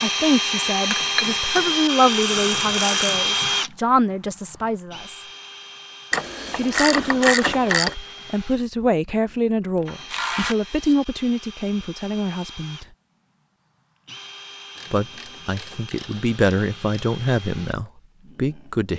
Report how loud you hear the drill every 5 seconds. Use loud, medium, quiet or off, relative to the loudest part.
loud, quiet, quiet, quiet.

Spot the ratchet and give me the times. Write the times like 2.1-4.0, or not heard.
0.9-3.2, 6.1-8.0, 9.8-10.9, 14.8-17.0.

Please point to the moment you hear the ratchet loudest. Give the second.
7 s.